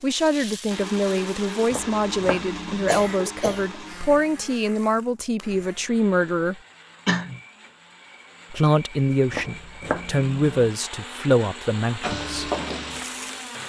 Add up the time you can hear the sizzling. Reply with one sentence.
The sizzling can be heard for 3 seconds in total.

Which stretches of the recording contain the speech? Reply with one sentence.
The speech can be heard from 0.0 to 6.5 s and from 8.5 to 12.5 s.